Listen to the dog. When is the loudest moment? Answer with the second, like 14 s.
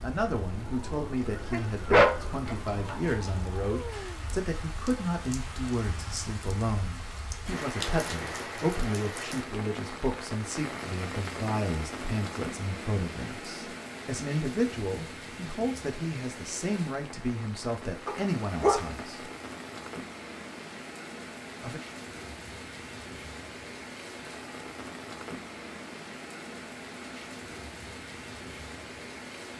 2 s.